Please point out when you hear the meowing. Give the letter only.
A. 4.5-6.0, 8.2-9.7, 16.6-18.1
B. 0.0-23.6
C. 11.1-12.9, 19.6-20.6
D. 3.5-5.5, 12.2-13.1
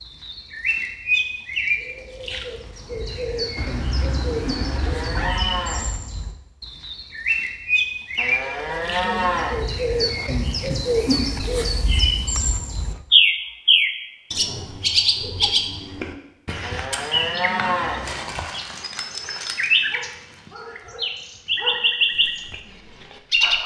D.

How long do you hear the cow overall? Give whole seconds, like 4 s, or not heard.
5 s.